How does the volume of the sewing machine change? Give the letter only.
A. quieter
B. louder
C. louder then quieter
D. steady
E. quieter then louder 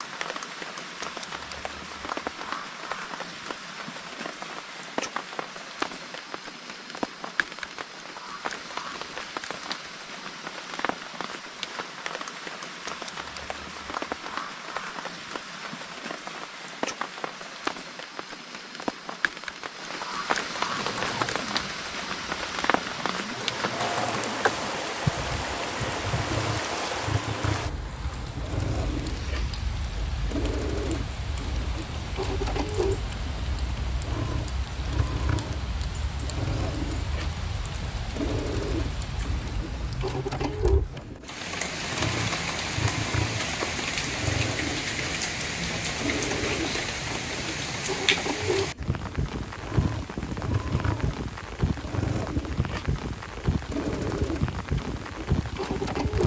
D.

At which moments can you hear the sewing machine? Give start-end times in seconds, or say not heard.
20.6-56.2.